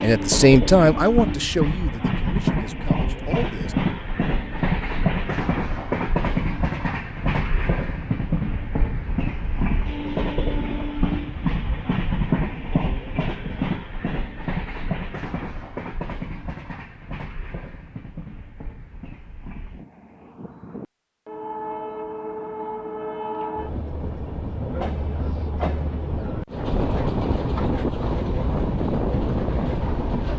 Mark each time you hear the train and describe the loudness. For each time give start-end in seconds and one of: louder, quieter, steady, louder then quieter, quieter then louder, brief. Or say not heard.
0.0-30.3 quieter then louder.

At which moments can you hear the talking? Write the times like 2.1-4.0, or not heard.
0.0-3.8.